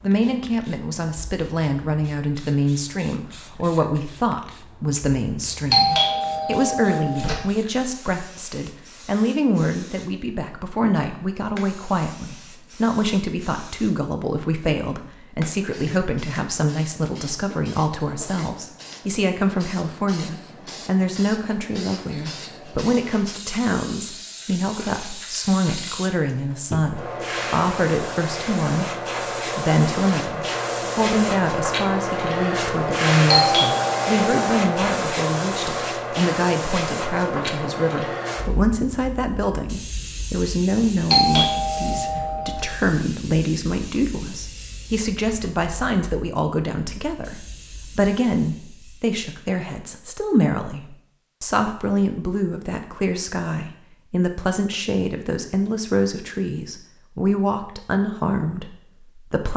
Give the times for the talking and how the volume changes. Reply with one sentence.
The talking can be heard from 0.0 to 59.5 s, at a steady volume.